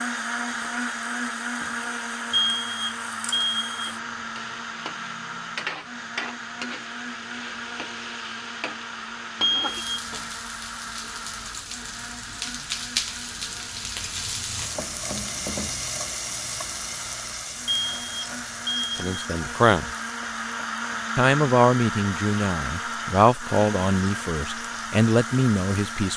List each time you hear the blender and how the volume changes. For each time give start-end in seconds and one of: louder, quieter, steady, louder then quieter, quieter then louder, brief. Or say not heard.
0.0-26.1 quieter then louder.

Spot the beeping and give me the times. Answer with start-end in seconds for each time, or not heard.
2.3-4.0, 9.4-10.0, 17.6-19.2.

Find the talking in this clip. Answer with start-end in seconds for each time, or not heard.
18.9-19.9, 21.1-26.1.